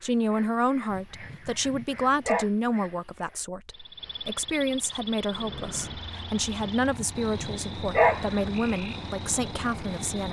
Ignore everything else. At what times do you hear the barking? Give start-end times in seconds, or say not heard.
0.9-2.5, 6.6-8.4.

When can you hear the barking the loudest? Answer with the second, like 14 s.
8 s.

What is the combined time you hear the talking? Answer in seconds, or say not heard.
10 s.